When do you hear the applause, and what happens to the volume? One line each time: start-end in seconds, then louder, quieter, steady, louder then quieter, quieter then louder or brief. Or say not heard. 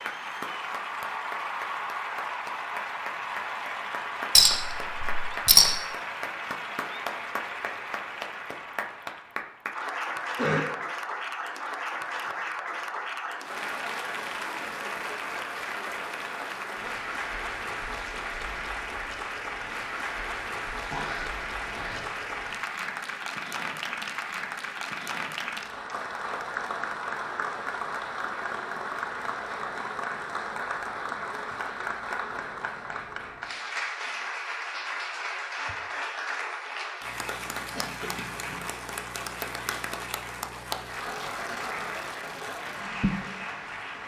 0.0-44.0 steady.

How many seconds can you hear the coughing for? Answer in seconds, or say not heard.
3 s.